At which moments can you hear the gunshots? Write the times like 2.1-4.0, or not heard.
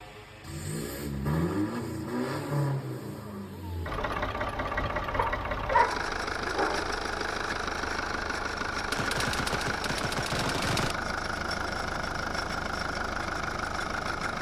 8.9-10.9.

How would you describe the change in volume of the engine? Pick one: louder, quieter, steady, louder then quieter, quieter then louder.
steady.